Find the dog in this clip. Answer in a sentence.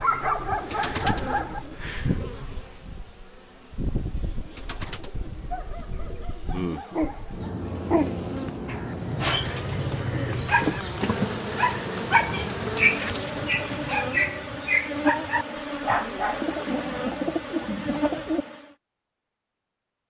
You can hear the dog from 0.0 to 2.5 s and from 5.5 to 16.4 s.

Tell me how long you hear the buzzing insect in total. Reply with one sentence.
You can hear the buzzing insect for 19 seconds altogether.